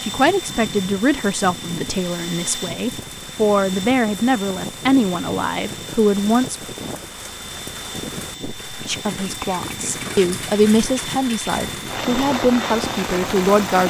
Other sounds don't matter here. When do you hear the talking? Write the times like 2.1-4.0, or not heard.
0.0-6.5, 8.8-13.8.